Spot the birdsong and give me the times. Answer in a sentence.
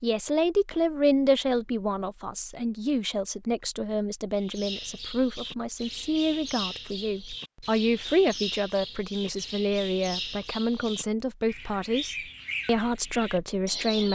The birdsong can be heard from 4.3 to 14.1 s.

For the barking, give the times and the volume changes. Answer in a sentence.
You can't hear the barking here.